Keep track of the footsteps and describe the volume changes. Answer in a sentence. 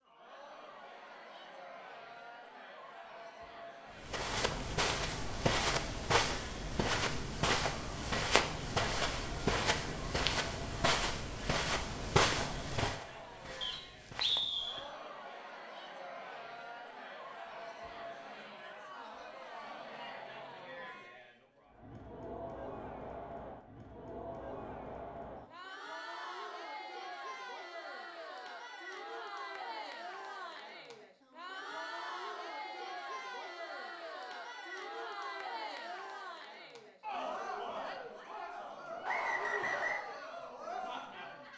The loudness of the footsteps goes down.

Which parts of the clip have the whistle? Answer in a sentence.
You can hear the whistle from 13.6 to 14.8 s and from 39.0 to 40.0 s.